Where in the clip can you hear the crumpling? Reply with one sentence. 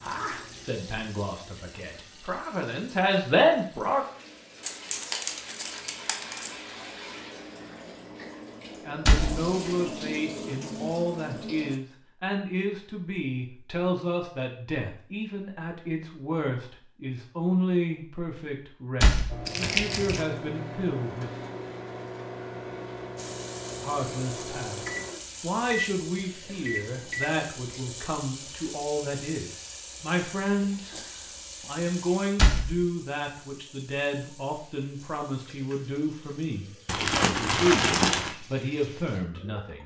The crumpling can be heard from 4.6 to 6.5 s, from 19.4 to 20.2 s and from 36.9 to 38.4 s.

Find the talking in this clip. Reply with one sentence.
The talking can be heard from 0.0 to 4.0 s, from 8.8 to 21.3 s and from 23.8 to 39.8 s.